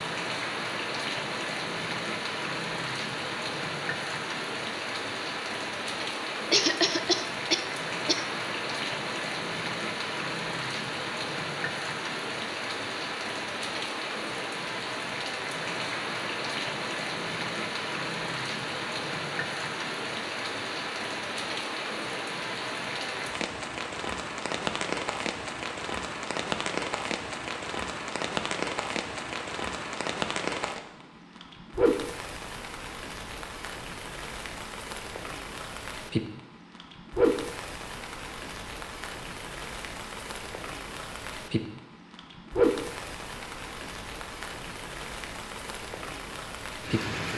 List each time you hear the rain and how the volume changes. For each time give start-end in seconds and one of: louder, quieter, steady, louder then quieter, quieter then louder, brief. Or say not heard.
0.0-47.3 steady.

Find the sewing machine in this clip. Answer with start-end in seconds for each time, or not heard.
not heard.